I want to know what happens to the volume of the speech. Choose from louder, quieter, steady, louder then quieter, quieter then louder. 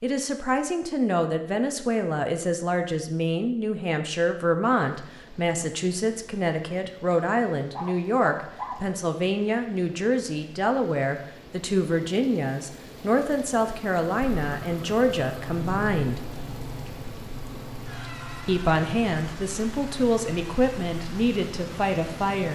steady.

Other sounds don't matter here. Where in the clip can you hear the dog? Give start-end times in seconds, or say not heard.
7.7-8.9.